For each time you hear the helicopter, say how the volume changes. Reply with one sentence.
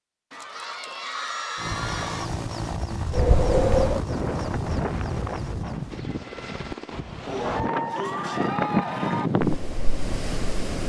The helicopter can be heard from 1.6 to 7.0 s, getting quieter.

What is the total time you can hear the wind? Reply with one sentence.
You can hear the wind for 8 seconds altogether.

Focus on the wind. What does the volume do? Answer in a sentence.
The volume of the wind goes down, then up.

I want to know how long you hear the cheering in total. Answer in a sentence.
You can hear the cheering for 4 seconds altogether.